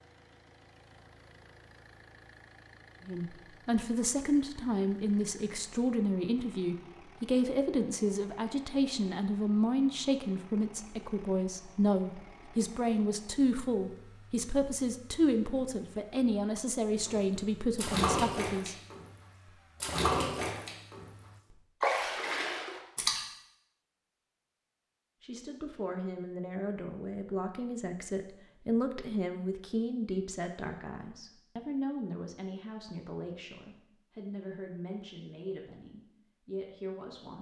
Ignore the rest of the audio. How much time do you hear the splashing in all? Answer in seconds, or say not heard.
5 s.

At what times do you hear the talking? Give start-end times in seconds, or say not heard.
3.0-18.8, 25.2-37.3.